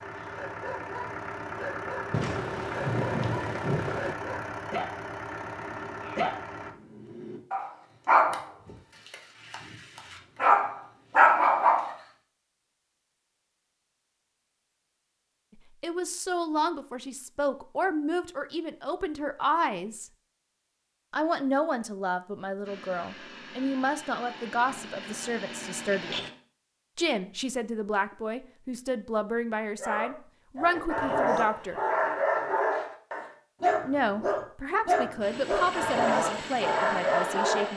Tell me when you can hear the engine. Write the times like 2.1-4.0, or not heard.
0.0-6.8, 22.6-26.3, 35.2-37.7.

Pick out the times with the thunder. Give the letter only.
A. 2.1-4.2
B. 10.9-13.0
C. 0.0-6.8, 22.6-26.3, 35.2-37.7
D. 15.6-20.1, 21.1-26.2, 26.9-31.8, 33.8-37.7
A.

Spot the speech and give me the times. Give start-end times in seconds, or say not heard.
15.6-20.1, 21.1-26.2, 26.9-31.8, 33.8-37.7.